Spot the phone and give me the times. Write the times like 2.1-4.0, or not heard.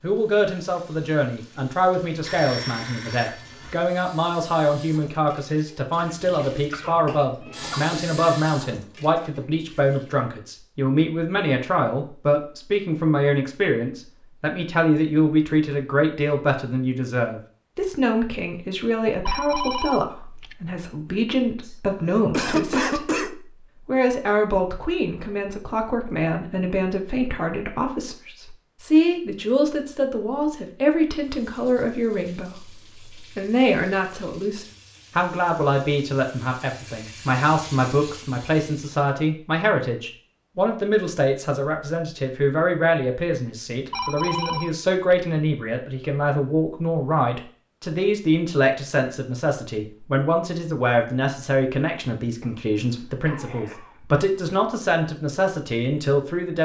2.2-3.8, 19.2-20.8, 43.9-45.1.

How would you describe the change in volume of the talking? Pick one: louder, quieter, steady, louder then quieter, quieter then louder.
steady.